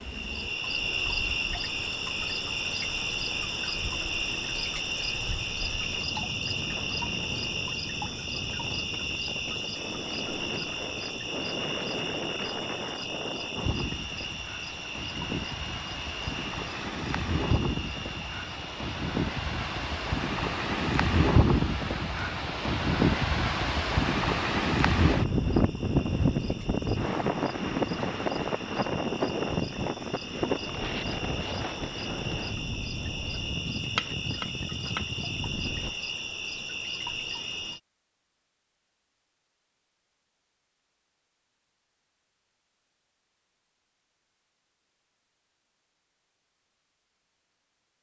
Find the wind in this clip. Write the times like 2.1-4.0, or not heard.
0.0-36.0.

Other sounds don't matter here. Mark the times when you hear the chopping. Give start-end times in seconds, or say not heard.
34.0-35.1.